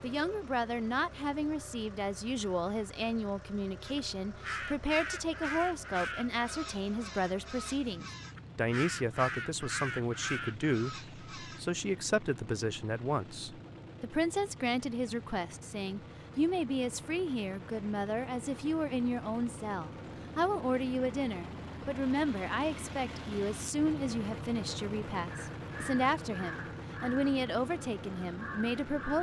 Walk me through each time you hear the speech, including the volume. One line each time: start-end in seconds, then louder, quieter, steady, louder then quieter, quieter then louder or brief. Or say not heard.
0.0-29.1 steady.